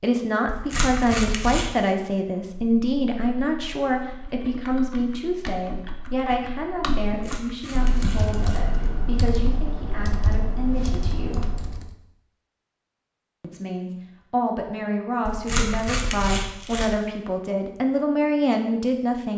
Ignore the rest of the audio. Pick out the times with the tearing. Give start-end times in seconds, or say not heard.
0.5-1.8, 7.0-8.7, 15.2-16.9.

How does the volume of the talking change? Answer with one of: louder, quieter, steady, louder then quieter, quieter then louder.
quieter then louder.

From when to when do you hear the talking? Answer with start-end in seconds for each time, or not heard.
0.0-11.5, 13.4-19.3.